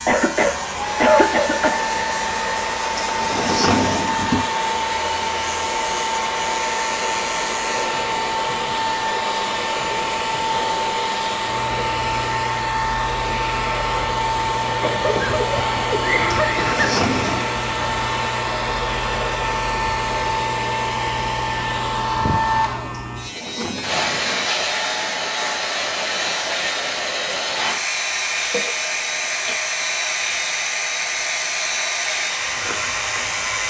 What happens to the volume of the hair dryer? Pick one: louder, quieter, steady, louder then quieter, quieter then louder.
steady.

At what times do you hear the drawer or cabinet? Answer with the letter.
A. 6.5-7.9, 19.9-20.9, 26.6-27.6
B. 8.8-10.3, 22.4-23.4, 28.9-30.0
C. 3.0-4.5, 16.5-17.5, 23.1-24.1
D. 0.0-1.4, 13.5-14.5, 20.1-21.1
C.